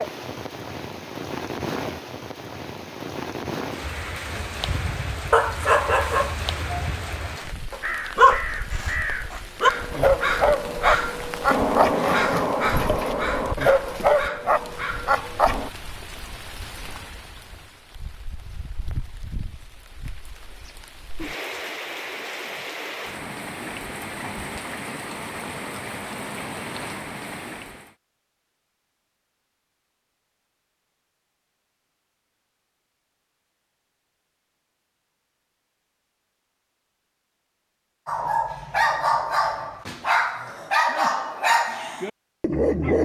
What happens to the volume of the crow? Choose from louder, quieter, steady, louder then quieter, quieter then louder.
louder then quieter.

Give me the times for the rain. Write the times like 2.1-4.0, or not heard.
0.0-27.9.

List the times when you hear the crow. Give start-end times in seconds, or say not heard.
3.8-15.7.